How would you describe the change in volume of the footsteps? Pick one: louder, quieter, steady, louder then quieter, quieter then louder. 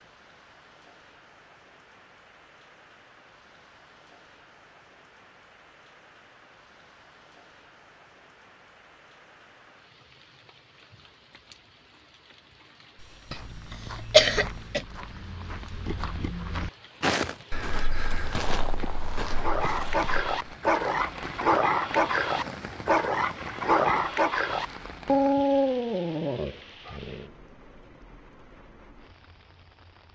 louder then quieter.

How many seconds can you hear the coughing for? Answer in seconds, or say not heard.
2 s.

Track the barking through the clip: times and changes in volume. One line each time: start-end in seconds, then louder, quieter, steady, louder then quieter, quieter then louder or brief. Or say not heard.
19.2-27.3 steady.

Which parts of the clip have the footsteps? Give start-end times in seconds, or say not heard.
13.2-20.3.